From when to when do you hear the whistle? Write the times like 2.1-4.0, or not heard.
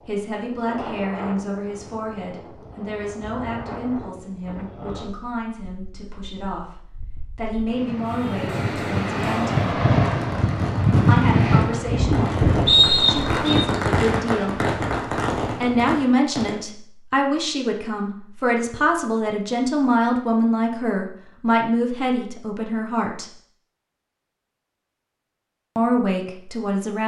12.7-13.6.